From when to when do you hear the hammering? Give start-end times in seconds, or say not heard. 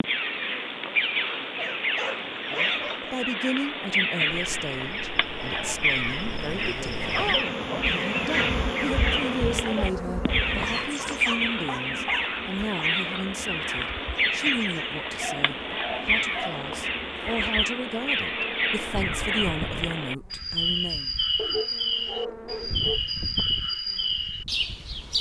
not heard.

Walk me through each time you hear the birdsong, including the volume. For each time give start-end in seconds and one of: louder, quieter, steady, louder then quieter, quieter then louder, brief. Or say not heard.
0.0-25.1 steady.